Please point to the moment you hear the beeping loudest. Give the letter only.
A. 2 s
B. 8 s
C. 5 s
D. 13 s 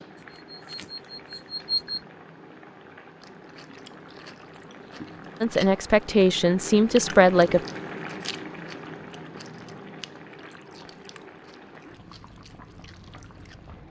A.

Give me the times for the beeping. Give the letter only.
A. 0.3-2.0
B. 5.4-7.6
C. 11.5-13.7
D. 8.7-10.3
A.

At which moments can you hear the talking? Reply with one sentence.
The talking can be heard from 5.4 to 7.6 s.